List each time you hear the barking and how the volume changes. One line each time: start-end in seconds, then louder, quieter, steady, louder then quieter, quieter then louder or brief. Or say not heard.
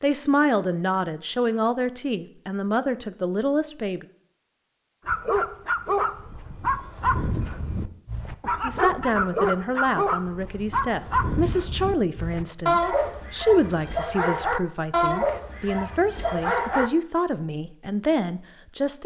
5.0-16.9 steady.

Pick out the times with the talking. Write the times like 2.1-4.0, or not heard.
0.0-4.0, 8.6-19.0.